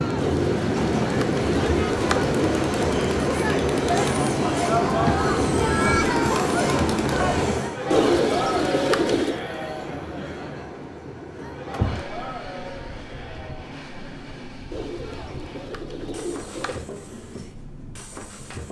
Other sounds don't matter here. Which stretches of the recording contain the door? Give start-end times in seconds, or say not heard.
11.4-12.1.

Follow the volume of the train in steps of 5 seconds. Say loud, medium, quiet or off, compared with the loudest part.
loud, loud, quiet, quiet.